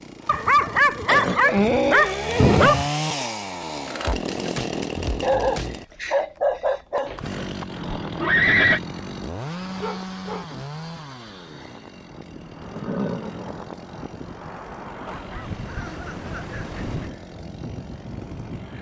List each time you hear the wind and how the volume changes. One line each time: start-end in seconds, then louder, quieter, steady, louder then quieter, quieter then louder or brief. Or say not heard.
7.7-18.7 quieter then louder.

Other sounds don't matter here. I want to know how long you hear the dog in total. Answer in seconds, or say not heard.
6 s.